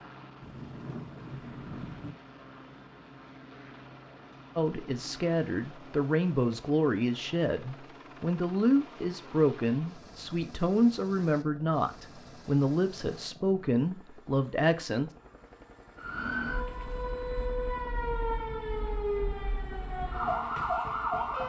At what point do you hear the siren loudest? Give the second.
21 s.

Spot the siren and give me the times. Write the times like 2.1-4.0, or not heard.
15.9-21.4.